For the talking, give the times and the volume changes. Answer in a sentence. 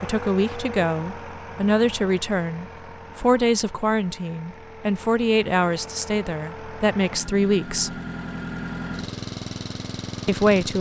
The talking can be heard from 0.0 to 7.9 s, at a steady volume; and briefly from 10.2 to 10.7 s.